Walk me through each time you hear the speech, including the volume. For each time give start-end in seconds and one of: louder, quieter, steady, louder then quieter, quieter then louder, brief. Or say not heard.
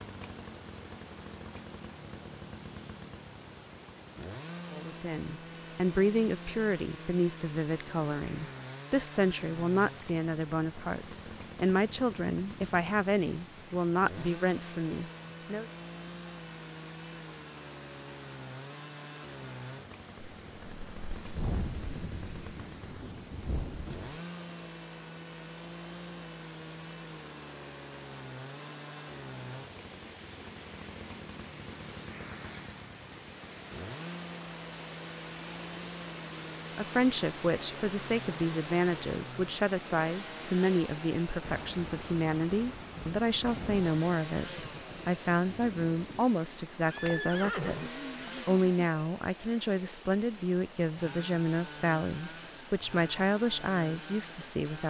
4.7-15.7 steady
36.8-54.8 steady.